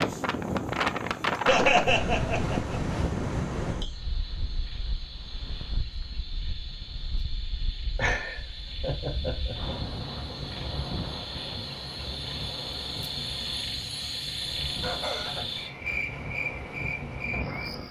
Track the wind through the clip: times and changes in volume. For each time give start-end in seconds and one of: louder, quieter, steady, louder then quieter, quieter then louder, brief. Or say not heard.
0.0-17.8 quieter then louder.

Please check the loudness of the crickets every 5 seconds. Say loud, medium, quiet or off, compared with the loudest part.
quiet, medium, loud, loud.